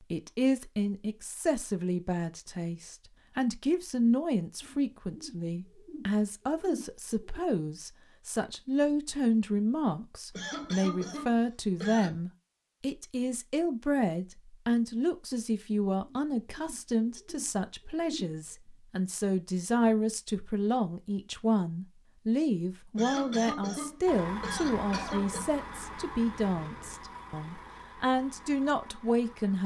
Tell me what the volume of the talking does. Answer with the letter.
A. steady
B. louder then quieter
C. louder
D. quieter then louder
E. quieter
A.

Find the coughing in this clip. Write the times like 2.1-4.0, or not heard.
10.3-12.2, 22.9-25.4.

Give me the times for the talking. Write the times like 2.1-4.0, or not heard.
0.1-29.6.